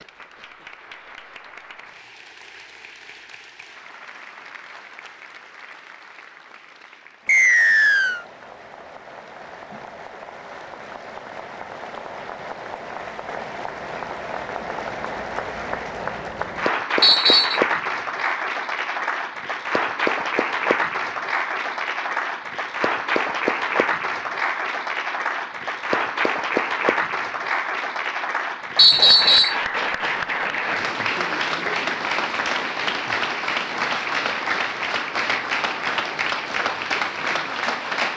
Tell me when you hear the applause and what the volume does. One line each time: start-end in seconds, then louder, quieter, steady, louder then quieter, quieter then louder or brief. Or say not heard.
0.0-38.1 louder.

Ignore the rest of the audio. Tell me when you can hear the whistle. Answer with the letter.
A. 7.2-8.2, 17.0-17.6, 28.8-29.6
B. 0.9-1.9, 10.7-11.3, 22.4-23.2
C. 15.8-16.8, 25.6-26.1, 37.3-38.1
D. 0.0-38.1
A.